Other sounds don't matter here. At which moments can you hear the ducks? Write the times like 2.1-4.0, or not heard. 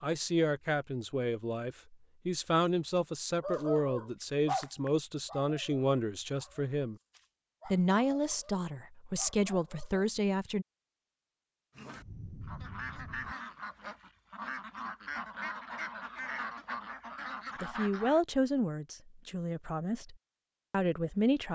11.8-18.2.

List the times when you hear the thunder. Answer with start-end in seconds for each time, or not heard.
11.9-13.3.